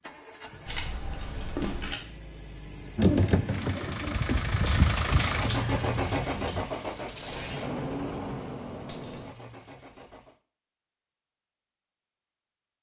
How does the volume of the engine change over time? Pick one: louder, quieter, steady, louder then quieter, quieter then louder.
louder then quieter.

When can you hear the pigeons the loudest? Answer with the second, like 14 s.
3 s.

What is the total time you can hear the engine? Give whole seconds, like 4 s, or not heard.
10 s.